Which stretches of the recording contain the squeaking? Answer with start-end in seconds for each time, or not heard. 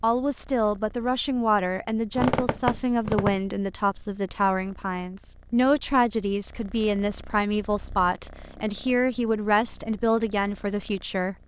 2.1-3.5.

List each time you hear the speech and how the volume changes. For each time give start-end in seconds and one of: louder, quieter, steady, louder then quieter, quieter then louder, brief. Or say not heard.
0.0-11.3 steady.